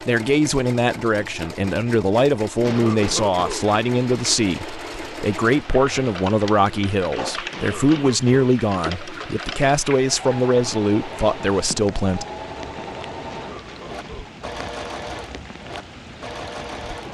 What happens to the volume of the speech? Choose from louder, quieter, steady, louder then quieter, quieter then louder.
steady.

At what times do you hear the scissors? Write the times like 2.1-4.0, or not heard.
not heard.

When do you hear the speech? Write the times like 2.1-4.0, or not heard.
0.1-12.2.